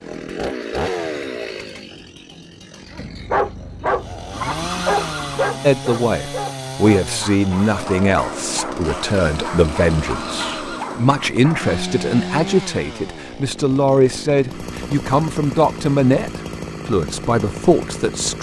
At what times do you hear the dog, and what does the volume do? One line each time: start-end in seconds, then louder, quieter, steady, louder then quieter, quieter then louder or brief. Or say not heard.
2.9-11.8 quieter.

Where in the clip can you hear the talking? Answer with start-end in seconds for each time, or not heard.
5.6-18.3.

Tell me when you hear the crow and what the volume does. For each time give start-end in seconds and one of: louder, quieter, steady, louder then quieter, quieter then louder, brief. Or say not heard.
not heard.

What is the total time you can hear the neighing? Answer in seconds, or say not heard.
2 s.